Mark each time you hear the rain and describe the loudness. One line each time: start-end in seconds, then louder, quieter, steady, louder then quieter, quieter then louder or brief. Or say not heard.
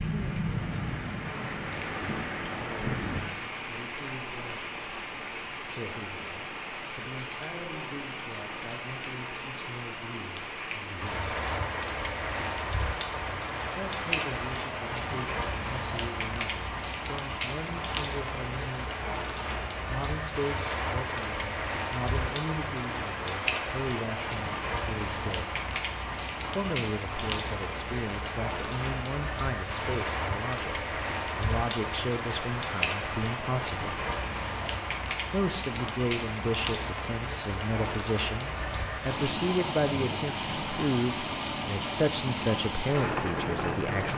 0.0-44.1 steady.